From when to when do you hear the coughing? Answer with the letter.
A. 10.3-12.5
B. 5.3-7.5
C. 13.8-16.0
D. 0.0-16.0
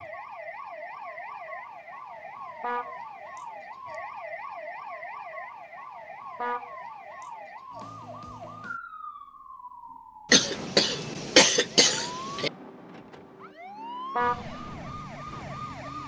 A.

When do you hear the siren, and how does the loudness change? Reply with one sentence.
You can hear the siren from 0.0 to 16.0 s, at a steady volume.